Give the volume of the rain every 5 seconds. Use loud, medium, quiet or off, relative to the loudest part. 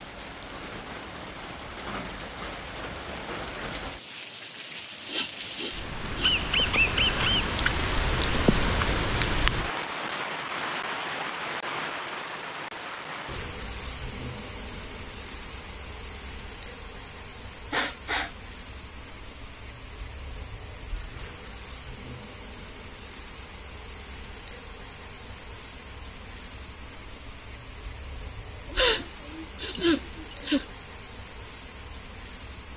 medium, loud, medium, quiet, quiet, quiet, quiet.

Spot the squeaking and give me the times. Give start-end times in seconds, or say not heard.
6.2-7.5.